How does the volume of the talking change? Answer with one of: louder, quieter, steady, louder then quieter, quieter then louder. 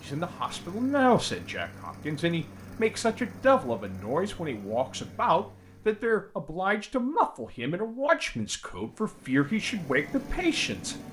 steady.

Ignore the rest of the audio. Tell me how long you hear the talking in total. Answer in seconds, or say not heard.
11 s.